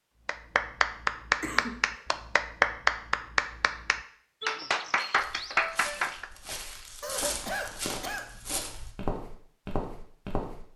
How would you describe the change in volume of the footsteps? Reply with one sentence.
The loudness of the footsteps goes up.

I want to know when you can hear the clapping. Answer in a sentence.
The clapping can be heard from 0.2 to 6.3 s.